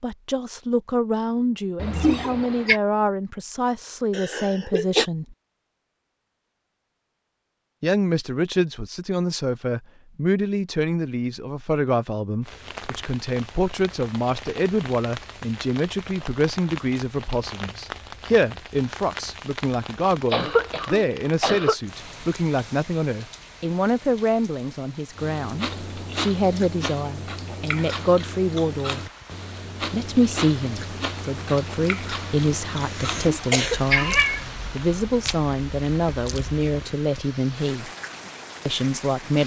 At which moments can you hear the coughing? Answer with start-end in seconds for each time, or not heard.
4.1-5.0, 20.3-21.8, 32.8-33.9.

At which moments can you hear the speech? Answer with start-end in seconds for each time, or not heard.
0.0-5.3, 7.8-29.0, 29.8-37.9, 38.6-39.4.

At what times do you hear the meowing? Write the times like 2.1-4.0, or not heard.
1.8-2.8, 33.1-34.5.